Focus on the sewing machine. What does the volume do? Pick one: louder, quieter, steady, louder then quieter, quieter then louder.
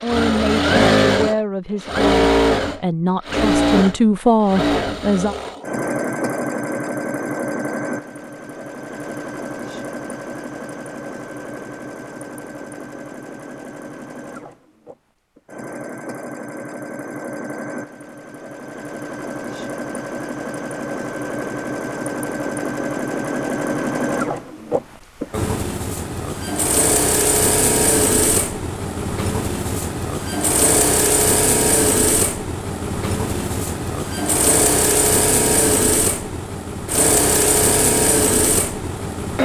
quieter then louder.